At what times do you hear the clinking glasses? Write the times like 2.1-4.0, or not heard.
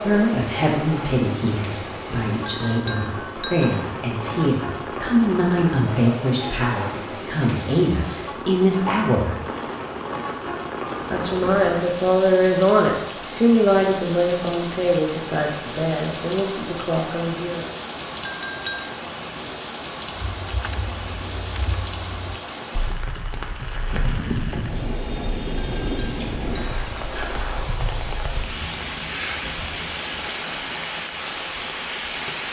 2.5-3.8, 18.2-18.9, 25.6-26.8.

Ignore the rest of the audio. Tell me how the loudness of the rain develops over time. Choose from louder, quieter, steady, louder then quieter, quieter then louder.
steady.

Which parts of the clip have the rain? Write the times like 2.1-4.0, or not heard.
0.0-32.4.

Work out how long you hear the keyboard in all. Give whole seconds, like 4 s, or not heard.
8 s.